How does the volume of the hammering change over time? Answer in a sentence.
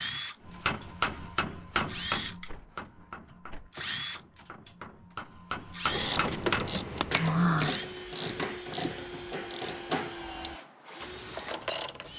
The volume of the hammering goes down, then up.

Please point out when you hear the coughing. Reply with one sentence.
The coughing can't be heard in this clip.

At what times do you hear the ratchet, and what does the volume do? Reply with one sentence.
The ratchet can be heard from 5.9 to 12.1 s, getting quieter.